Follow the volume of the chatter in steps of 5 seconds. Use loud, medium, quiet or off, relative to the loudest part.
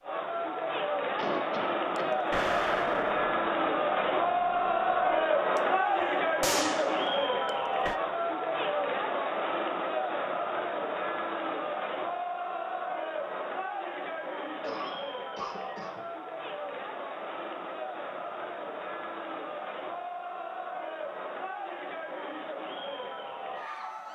loud, loud, medium, medium, medium.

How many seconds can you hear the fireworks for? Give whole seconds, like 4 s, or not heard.
6 s.